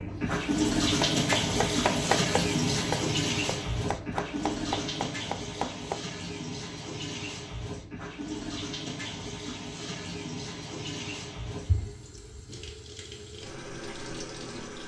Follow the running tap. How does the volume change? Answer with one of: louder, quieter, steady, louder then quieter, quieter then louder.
quieter.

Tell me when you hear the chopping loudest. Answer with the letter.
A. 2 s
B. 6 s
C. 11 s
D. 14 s
A.